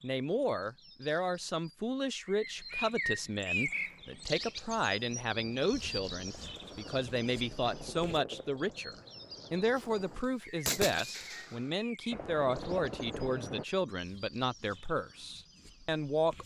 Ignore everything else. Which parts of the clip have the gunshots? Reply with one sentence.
You can hear the gunshots from 10.7 to 11.7 s.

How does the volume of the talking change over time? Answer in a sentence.
The volume of the talking stays about the same.